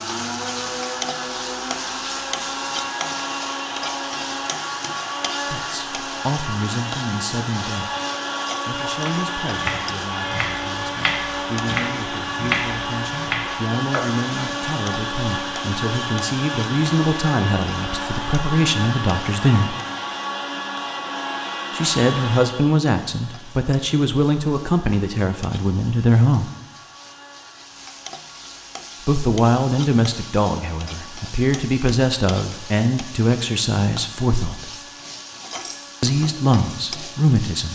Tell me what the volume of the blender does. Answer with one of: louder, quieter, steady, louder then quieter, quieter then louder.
quieter.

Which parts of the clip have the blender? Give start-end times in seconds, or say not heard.
0.0-37.7.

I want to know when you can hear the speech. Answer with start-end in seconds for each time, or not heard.
5.5-8.0, 8.7-19.8, 21.7-26.5, 29.1-34.7, 36.0-37.7.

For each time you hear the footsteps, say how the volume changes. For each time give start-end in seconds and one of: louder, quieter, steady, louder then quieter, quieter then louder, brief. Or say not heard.
not heard.